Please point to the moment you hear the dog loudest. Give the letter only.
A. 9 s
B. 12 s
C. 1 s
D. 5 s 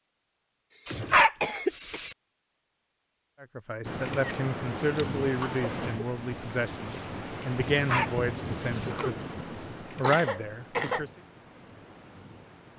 C.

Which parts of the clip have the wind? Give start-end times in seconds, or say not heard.
3.8-12.7.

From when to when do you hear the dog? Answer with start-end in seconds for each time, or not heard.
0.8-2.1, 7.6-8.9.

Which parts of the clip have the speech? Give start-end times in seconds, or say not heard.
3.4-11.2.